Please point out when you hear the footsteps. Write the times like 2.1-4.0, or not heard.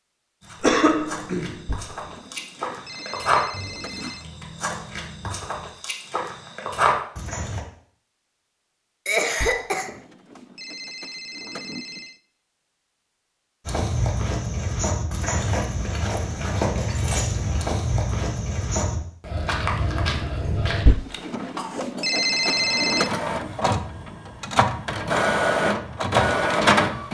0.4-7.7, 13.7-20.9.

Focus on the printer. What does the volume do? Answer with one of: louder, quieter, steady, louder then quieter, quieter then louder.
louder.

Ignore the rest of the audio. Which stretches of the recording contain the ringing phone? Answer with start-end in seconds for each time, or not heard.
1.6-4.2, 9.4-12.2, 20.9-23.1.